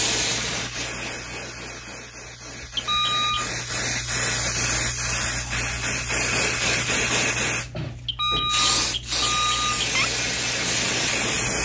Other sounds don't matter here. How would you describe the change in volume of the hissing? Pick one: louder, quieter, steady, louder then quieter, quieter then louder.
louder.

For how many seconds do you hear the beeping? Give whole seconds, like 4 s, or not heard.
3 s.